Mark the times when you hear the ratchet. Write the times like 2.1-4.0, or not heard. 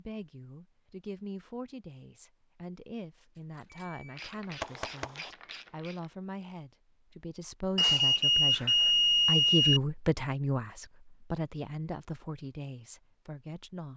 3.4-6.0.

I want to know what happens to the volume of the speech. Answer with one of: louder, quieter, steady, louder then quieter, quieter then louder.
louder then quieter.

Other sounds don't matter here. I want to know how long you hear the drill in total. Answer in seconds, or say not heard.
not heard.